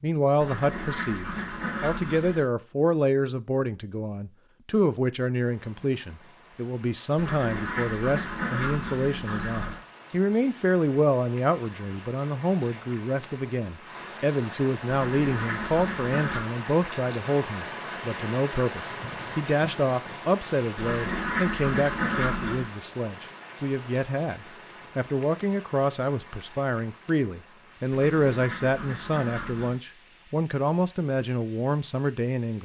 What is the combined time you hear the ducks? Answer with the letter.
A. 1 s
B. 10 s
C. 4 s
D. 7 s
B.